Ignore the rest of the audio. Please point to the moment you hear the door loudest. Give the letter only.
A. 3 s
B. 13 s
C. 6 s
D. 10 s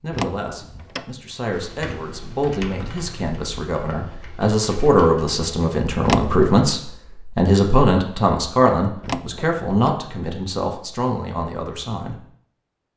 C.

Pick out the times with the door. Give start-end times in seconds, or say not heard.
0.1-1.1, 6.0-6.5, 9.0-9.9.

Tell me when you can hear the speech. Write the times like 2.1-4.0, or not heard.
0.0-12.2.